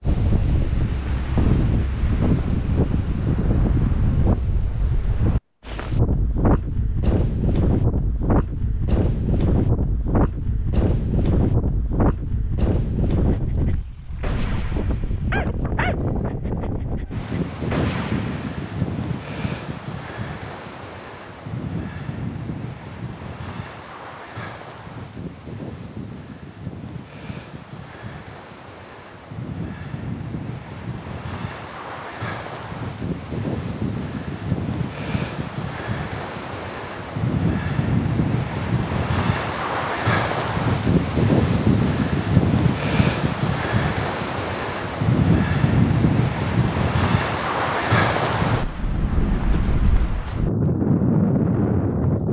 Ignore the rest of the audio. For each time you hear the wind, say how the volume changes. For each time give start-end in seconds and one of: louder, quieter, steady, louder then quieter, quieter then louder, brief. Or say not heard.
0.0-52.2 quieter then louder.